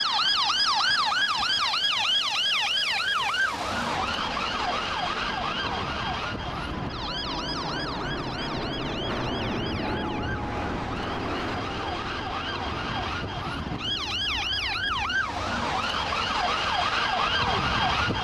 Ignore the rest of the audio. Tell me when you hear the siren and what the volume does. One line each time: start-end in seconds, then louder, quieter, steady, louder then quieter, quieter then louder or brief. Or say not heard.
0.0-18.1 quieter then louder.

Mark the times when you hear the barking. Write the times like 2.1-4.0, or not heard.
not heard.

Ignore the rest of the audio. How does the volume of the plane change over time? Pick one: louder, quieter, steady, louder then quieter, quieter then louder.
louder then quieter.